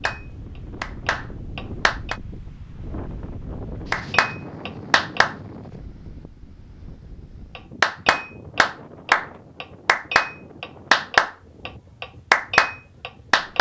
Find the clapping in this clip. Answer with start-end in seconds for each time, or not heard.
0.0-2.1, 3.9-5.3, 7.5-13.5.